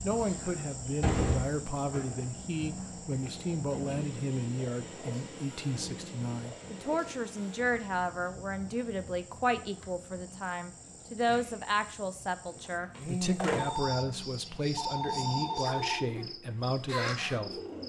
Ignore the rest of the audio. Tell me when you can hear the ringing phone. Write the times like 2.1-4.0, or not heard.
13.6-16.1.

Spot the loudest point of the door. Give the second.
1 s.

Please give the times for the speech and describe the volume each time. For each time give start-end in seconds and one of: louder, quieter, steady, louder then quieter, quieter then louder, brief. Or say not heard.
0.0-17.6 steady.